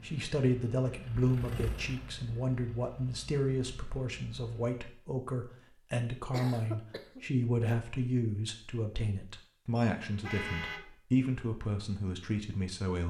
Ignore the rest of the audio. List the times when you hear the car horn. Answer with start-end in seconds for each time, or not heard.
9.8-10.8.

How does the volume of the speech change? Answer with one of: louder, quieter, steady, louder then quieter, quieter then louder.
steady.